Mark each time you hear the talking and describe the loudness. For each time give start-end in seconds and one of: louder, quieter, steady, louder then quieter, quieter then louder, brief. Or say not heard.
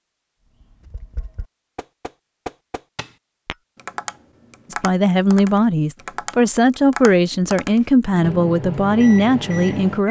4.7-10.0 steady.